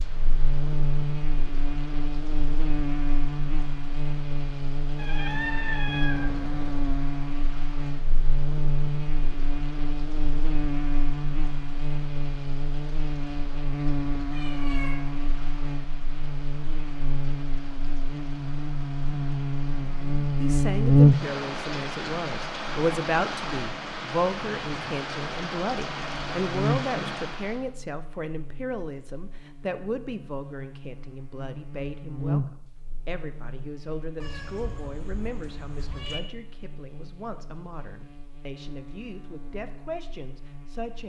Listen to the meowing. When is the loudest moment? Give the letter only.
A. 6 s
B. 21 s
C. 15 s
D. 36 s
A.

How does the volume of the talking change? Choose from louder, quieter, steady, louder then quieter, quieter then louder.
quieter.